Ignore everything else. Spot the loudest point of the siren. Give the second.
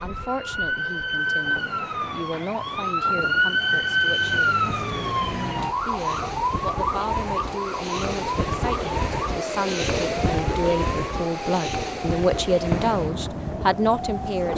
4 s.